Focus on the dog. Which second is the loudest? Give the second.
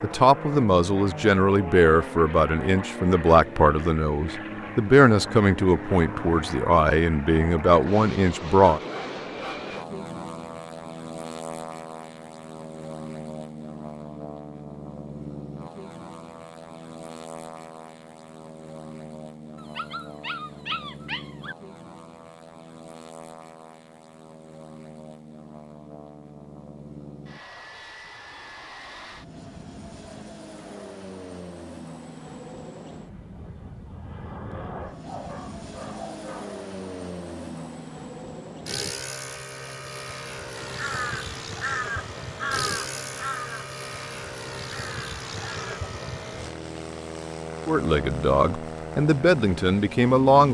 21 s.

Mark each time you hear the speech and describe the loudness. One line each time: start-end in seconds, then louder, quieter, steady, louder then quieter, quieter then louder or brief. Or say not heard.
0.0-8.8 steady
47.6-50.4 brief.